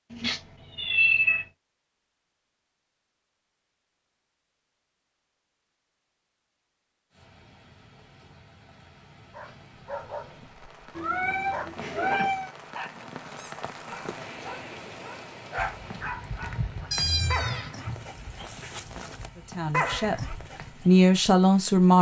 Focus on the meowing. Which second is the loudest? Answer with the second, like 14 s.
1 s.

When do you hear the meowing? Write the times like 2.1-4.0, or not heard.
0.1-1.4, 10.9-12.5, 16.9-18.1.